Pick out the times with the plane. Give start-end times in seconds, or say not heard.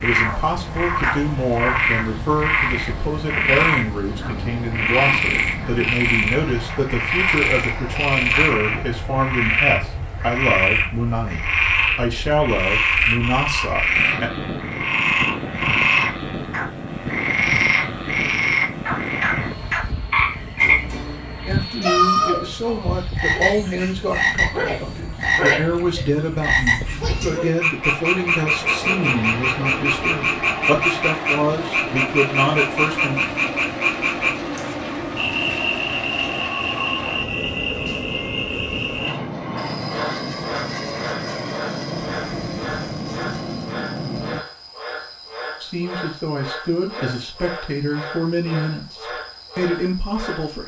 0.0-44.5.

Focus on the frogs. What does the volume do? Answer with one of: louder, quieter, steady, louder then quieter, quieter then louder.
quieter.